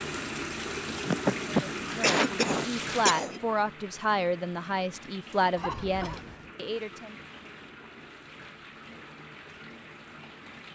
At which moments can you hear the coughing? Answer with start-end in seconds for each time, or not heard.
0.9-3.4, 5.5-6.5.